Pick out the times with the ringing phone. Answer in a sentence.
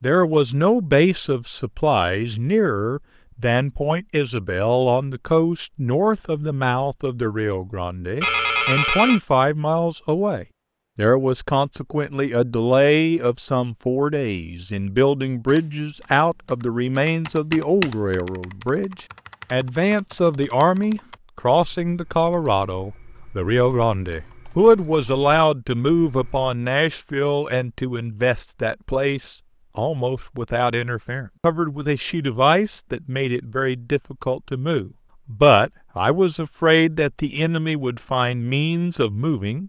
You can hear the ringing phone from 8.2 to 9.2 s.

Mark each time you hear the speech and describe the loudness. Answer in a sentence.
You can hear the speech from 0.0 to 39.6 s, at a steady volume.